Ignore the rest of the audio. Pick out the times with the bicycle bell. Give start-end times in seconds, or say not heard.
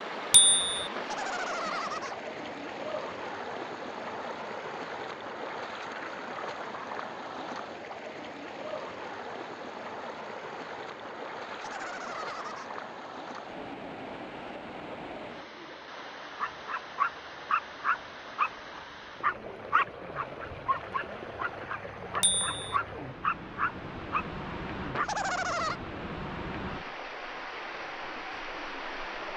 0.3-0.9, 22.2-22.6.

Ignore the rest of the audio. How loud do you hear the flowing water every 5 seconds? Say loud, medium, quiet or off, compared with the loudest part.
loud, loud, loud, medium, loud, loud.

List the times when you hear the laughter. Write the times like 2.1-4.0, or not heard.
0.9-2.1, 11.4-12.7, 24.9-25.8.